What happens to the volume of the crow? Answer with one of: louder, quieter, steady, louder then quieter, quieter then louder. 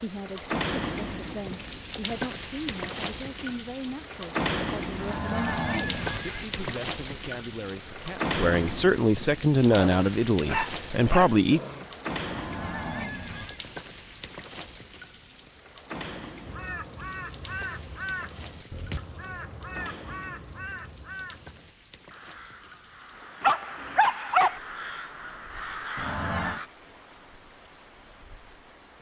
quieter then louder.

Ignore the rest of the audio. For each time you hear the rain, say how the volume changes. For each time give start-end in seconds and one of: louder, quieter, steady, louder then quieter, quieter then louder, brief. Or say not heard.
0.0-28.9 quieter.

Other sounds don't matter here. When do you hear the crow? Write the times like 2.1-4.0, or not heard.
16.4-26.7.